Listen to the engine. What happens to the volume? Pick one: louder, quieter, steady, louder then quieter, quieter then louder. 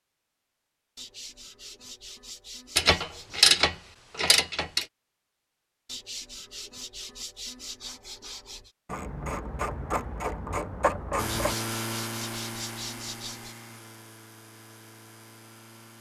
quieter.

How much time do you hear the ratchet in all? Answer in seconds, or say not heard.
5 s.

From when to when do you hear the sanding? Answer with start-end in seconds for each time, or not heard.
0.9-3.5, 5.8-8.7, 11.2-13.6.